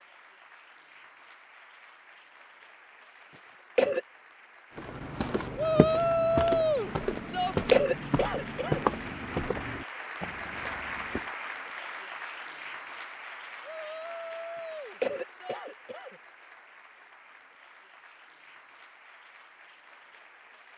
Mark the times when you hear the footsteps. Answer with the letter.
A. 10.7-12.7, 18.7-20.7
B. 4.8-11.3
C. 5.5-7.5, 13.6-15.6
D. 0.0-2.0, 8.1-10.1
B.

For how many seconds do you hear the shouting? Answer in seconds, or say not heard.
4 s.